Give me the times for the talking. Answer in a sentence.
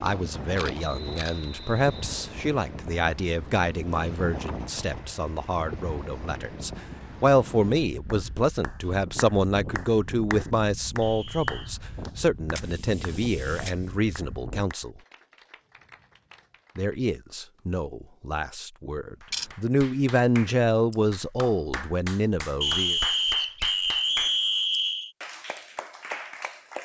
You can hear the talking from 0.0 to 15.0 s and from 16.8 to 23.0 s.